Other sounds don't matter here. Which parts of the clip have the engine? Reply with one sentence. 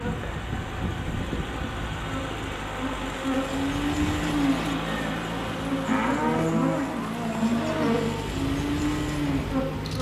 The engine can be heard from 0.0 to 9.9 s.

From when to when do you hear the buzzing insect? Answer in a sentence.
You can hear the buzzing insect from 0.0 to 9.9 s.